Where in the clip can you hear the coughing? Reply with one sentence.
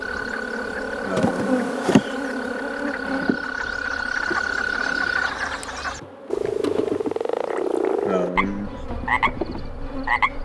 The coughing can be heard from 1.0 to 2.2 s and from 8.1 to 8.7 s.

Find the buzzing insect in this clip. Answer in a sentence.
You can hear the buzzing insect from 0.0 to 10.4 s.